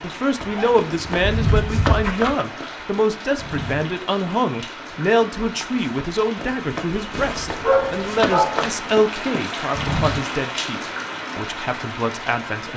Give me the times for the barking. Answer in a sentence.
You can hear the barking from 0.4 to 2.4 s and from 7.1 to 8.7 s.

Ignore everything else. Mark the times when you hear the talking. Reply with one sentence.
The talking can be heard from 0.0 to 12.7 s.